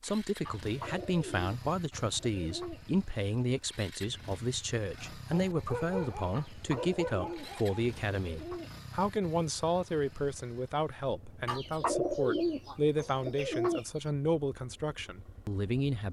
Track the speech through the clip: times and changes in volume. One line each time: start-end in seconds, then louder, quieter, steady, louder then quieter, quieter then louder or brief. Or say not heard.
0.0-16.0 steady.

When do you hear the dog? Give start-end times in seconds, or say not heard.
4.9-7.8.